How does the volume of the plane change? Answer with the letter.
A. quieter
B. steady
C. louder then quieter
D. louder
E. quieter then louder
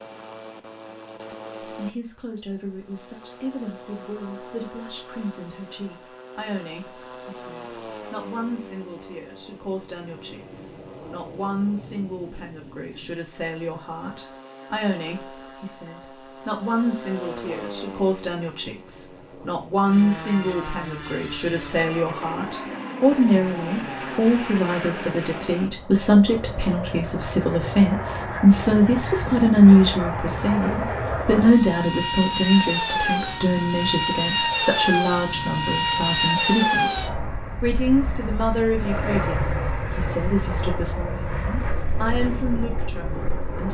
D.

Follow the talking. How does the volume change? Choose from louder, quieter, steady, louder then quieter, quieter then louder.
louder then quieter.